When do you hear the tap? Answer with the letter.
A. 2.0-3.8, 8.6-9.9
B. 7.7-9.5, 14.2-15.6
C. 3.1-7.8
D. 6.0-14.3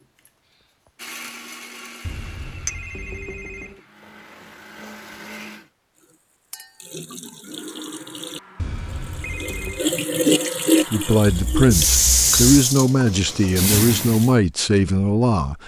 D.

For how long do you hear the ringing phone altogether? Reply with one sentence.
You can hear the ringing phone for 3 seconds altogether.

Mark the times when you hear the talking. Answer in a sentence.
You can hear the talking from 10.9 to 15.6 s.